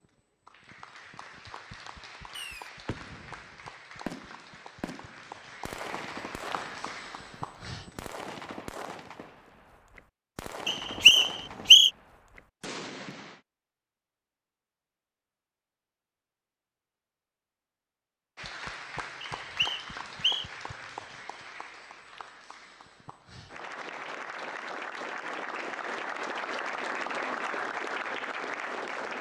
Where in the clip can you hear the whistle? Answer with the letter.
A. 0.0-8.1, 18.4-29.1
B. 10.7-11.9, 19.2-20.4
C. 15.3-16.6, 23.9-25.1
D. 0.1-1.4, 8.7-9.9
B.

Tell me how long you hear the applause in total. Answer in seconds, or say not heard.
19 s.